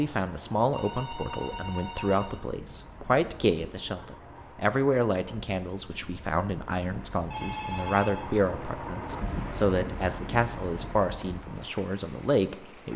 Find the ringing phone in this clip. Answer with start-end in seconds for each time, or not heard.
0.7-2.4, 7.3-8.4.